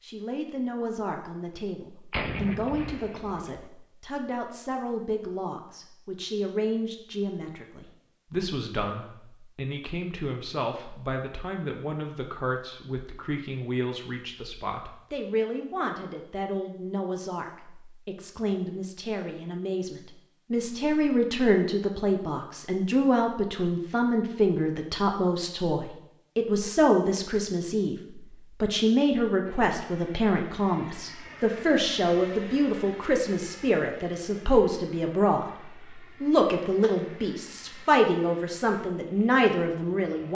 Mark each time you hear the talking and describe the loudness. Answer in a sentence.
You can hear the talking from 0.0 to 40.2 s, getting louder.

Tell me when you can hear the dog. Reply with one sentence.
The dog can't be heard in this clip.